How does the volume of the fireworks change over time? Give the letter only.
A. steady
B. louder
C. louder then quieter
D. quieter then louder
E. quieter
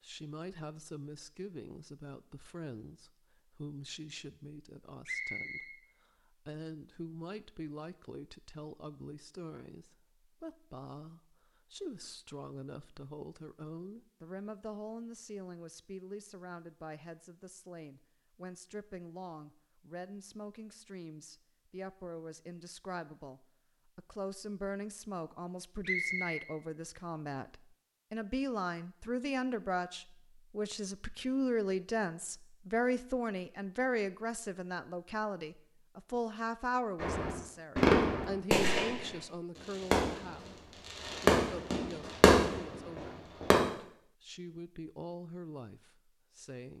D.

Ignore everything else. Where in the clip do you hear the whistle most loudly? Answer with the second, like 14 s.
26 s.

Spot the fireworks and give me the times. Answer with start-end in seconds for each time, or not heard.
37.0-43.5.